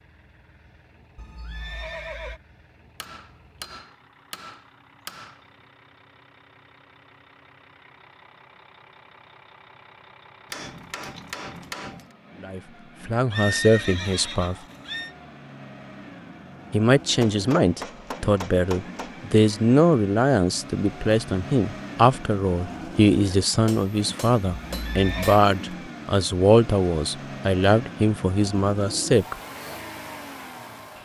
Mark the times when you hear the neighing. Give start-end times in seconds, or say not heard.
1.1-2.4, 13.3-15.2, 24.6-25.4.